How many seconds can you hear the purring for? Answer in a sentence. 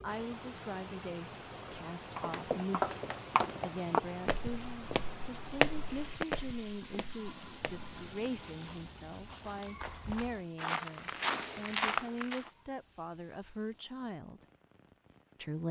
You can't hear the purring here.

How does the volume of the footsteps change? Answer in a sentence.
The loudness of the footsteps goes down, then up.